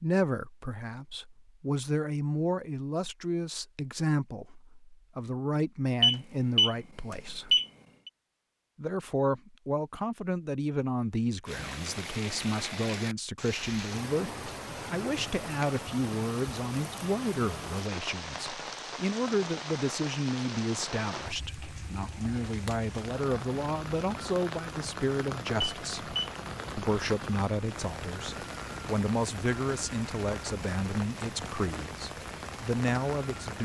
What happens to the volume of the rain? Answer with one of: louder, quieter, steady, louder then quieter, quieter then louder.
steady.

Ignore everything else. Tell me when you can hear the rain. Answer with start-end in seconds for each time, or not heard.
11.4-33.6.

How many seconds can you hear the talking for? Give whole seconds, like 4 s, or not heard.
32 s.